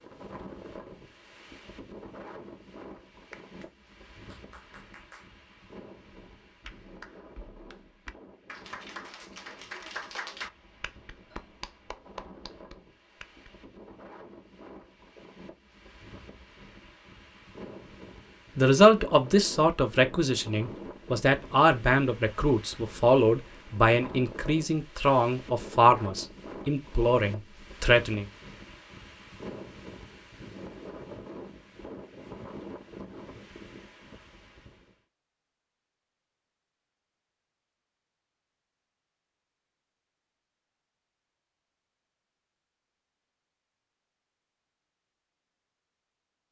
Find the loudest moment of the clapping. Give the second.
10 s.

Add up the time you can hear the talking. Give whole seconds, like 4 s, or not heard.
10 s.